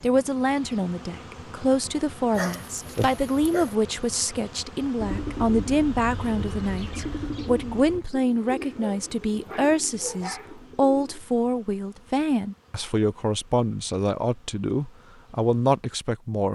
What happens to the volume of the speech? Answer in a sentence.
The loudness of the speech stays about the same.